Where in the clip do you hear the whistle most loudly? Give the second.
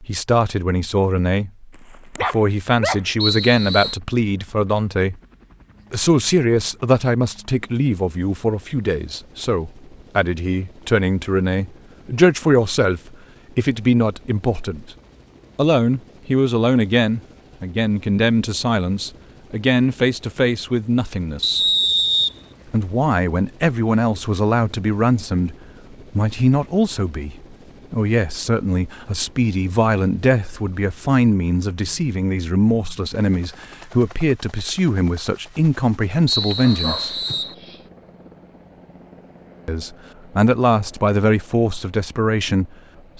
22 s.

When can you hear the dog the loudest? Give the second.
3 s.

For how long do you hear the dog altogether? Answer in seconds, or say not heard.
3 s.